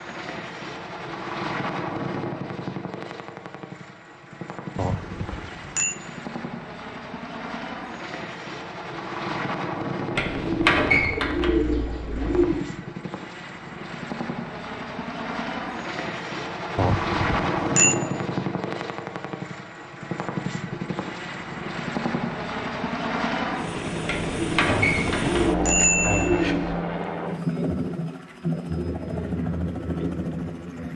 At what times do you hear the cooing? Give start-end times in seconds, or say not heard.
10.2-12.7, 24.1-26.8.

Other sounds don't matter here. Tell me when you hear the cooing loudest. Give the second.
11 s.